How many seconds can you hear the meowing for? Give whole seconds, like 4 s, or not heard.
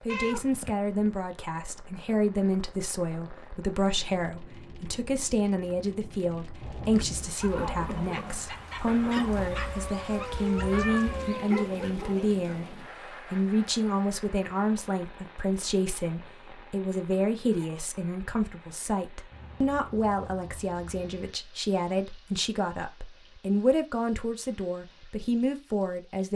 5 s.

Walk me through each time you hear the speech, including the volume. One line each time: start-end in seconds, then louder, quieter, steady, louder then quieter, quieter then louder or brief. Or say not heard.
0.1-26.3 steady.